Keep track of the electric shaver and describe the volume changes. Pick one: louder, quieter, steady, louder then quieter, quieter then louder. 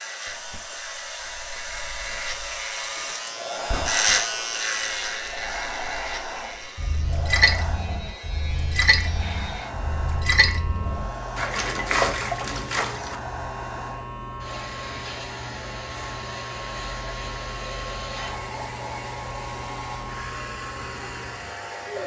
quieter.